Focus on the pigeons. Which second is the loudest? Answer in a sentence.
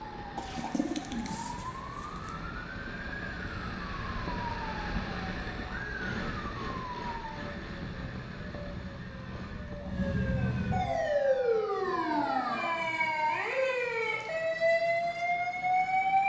The loudest moment of the pigeons is at 1 second.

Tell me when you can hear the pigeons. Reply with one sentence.
You can hear the pigeons from 0.3 to 2.4 s.